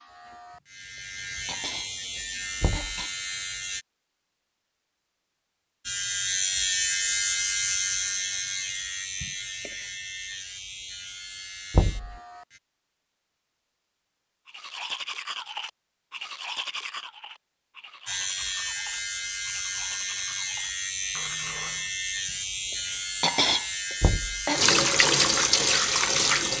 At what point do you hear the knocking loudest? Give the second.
12 s.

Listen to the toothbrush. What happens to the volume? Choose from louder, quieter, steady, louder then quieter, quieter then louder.
quieter.